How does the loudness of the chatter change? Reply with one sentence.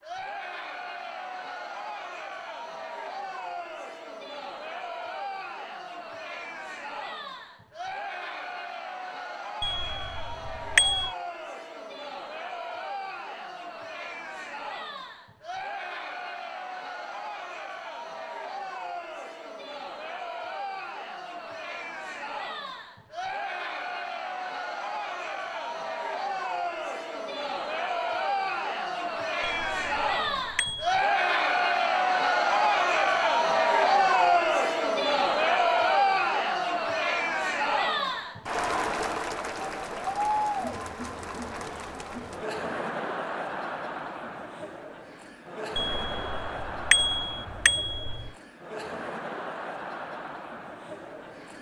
The loudness of the chatter goes up, then down.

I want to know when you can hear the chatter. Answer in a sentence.
The chatter can be heard from 0.0 to 51.5 s.